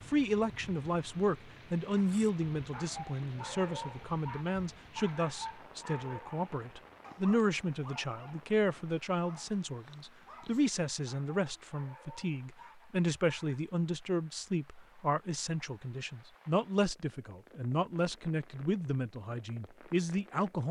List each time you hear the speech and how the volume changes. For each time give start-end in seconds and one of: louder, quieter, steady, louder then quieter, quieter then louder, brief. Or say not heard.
0.1-20.6 steady.